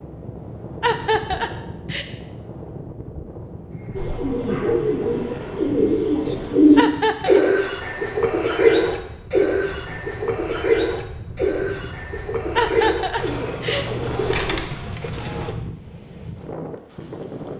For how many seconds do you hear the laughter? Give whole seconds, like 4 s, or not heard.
3 s.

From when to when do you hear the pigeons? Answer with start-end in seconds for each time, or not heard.
4.0-15.6.